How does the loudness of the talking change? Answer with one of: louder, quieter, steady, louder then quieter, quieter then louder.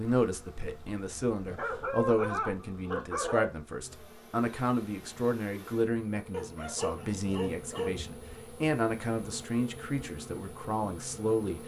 steady.